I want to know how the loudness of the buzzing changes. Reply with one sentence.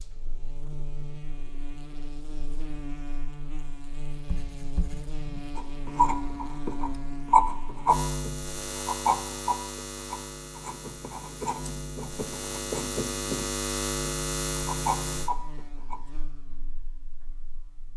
The loudness of the buzzing goes up.